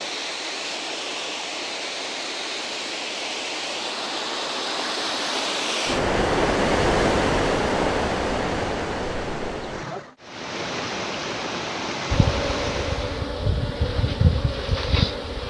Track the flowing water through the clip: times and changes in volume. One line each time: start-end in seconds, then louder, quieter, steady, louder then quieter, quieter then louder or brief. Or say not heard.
0.0-13.3 louder then quieter.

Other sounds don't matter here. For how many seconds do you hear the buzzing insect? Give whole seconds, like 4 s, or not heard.
3 s.